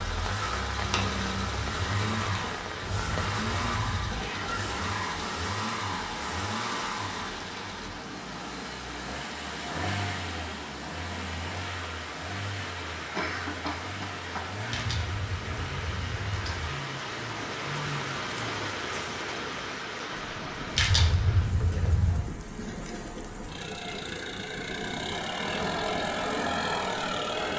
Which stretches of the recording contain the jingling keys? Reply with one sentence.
The jingling keys can be heard from 0.8 to 2.5 s, from 14.7 to 16.6 s and from 20.7 to 22.2 s.